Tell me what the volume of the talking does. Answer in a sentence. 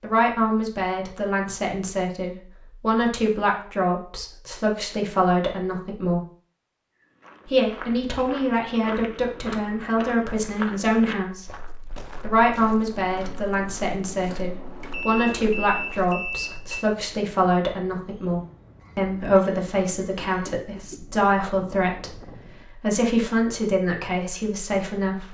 The volume of the talking stays about the same.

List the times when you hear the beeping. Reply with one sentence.
You can hear the beeping from 14.3 to 16.9 s.